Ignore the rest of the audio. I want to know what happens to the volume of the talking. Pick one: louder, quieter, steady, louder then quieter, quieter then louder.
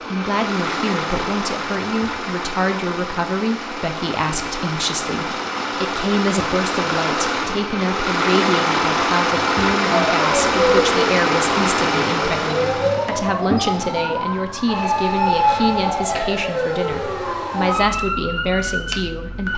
steady.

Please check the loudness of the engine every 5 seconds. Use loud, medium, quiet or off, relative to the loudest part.
medium, loud, loud, off.